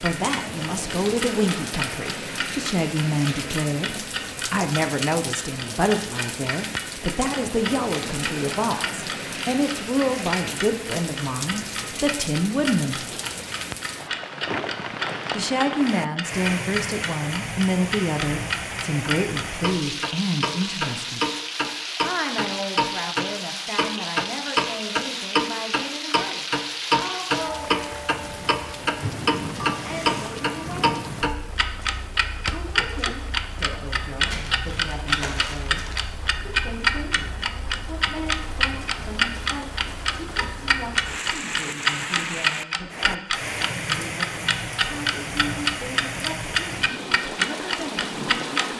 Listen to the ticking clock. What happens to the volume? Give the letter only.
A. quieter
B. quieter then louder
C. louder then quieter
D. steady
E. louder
E.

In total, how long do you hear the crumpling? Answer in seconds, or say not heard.
2 s.